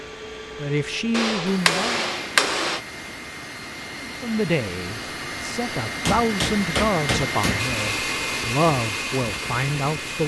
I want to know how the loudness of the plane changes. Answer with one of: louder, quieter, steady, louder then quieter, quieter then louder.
louder.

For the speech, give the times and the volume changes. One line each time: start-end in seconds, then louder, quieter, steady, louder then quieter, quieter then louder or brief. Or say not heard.
0.6-2.0 brief
4.0-10.2 steady.